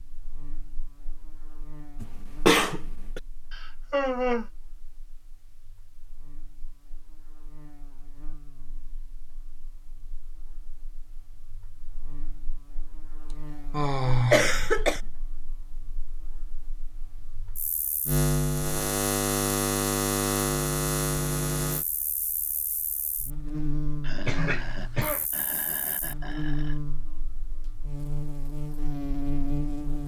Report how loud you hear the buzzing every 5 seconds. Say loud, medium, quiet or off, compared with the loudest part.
quiet, quiet, quiet, loud, loud, medium.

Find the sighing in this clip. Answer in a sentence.
The sighing can be heard from 3.5 to 4.5 s, from 13.3 to 14.8 s and from 24.0 to 26.8 s.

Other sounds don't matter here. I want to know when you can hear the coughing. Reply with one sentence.
You can hear the coughing from 2.0 to 3.2 s, from 14.3 to 15.0 s and from 24.2 to 25.2 s.